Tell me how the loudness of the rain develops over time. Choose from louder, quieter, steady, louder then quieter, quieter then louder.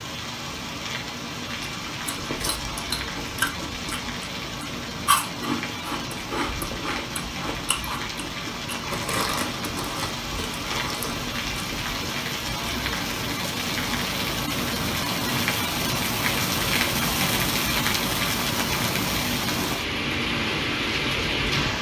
louder.